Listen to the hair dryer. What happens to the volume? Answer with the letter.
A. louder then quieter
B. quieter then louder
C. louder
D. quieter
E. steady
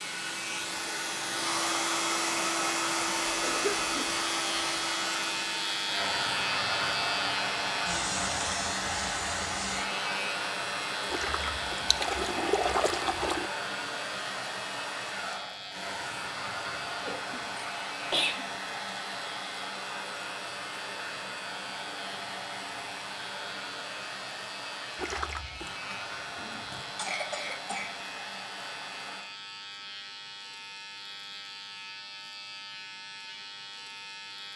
D.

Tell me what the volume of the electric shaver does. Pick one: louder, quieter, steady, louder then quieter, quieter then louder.
quieter.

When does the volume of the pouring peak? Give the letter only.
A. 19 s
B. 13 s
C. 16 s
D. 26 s
B.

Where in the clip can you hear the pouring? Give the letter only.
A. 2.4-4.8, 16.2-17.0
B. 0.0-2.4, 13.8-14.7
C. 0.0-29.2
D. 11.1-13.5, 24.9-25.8
D.